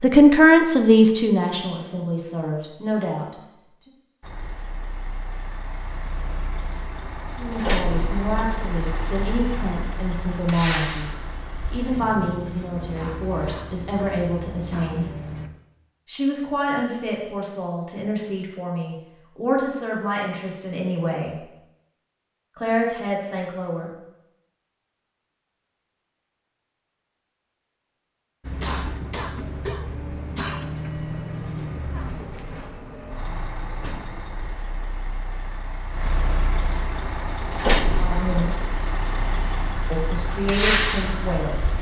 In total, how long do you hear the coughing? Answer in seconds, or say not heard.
4 s.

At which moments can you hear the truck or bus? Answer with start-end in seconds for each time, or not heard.
4.2-15.5, 28.4-41.7.